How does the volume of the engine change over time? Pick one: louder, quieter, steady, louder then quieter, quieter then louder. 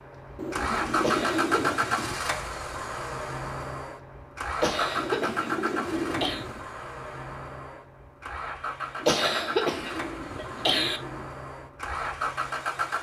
quieter.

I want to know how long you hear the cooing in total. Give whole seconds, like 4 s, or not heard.
6 s.